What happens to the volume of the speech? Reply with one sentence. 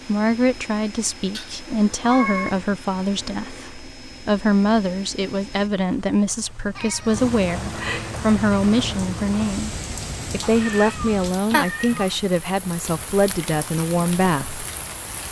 The volume of the speech stays about the same.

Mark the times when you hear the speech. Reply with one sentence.
The speech can be heard from 0.1 to 9.7 s and from 10.3 to 14.7 s.